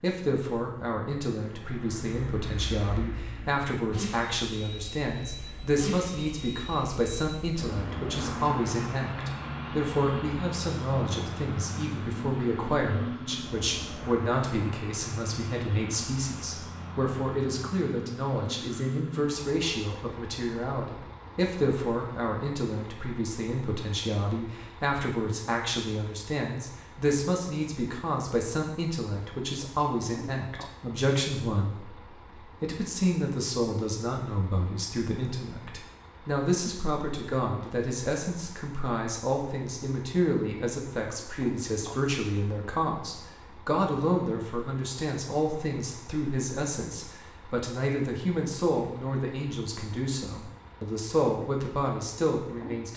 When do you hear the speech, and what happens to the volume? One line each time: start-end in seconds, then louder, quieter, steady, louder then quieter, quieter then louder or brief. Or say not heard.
0.0-52.9 steady.